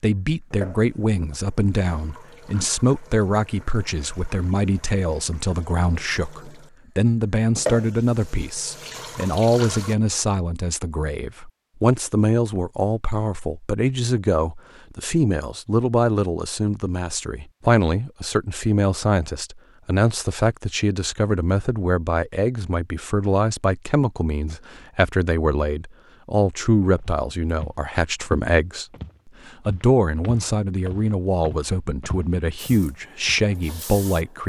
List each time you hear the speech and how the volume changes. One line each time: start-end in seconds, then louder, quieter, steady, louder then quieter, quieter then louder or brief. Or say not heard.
0.0-34.4 steady.